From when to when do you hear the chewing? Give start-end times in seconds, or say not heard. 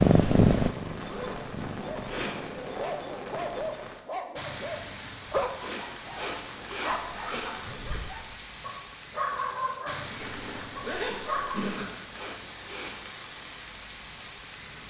not heard.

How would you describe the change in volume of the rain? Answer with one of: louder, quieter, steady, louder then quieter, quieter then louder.
steady.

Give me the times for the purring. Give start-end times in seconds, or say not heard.
0.0-2.7.